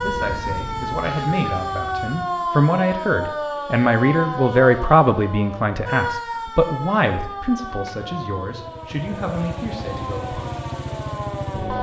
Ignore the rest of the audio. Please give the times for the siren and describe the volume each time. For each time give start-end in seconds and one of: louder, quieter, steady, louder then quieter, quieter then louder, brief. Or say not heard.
0.0-11.7 quieter.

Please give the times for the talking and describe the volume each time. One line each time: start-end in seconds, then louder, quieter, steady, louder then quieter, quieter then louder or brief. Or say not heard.
0.0-10.5 louder then quieter.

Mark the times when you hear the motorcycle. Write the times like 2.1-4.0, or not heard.
0.0-2.2, 7.5-11.7.